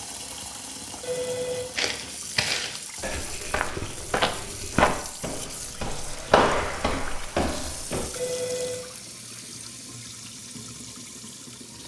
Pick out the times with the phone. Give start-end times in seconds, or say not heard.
1.0-1.6, 8.2-8.9.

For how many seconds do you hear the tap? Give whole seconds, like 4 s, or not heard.
12 s.